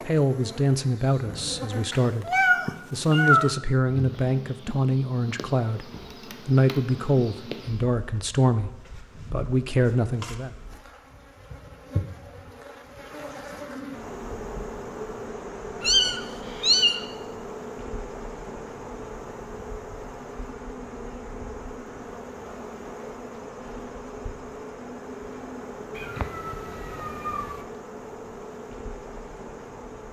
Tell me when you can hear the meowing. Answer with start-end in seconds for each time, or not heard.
1.9-3.5, 15.8-17.0, 25.9-27.6.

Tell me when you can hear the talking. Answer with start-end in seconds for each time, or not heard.
0.1-10.5.